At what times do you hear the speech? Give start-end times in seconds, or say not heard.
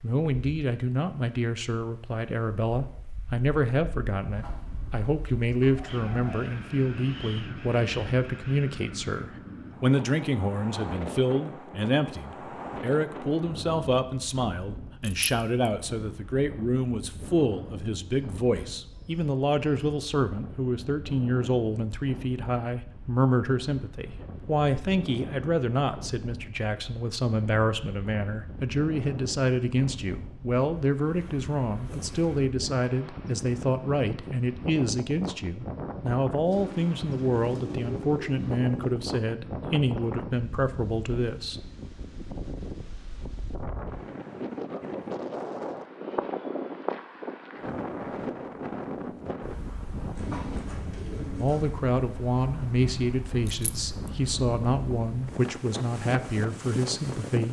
0.0-41.5, 51.4-57.4.